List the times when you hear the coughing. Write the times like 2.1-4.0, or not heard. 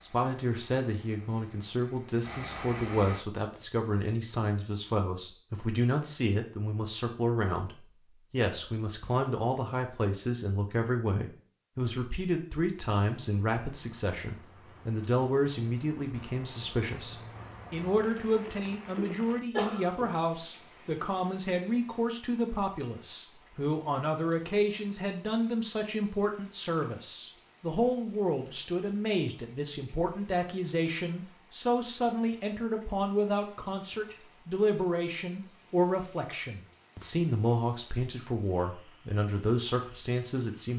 18.5-20.1.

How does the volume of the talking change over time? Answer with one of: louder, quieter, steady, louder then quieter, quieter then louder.
steady.